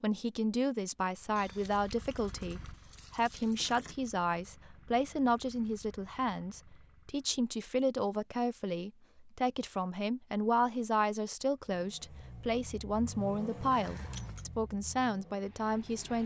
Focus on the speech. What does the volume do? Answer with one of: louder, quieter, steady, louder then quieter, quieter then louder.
steady.